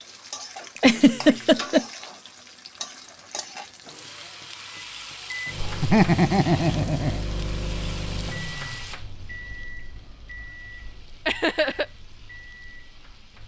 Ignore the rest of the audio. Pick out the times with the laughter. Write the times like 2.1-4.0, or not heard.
0.8-1.9, 5.6-7.2, 11.2-11.8.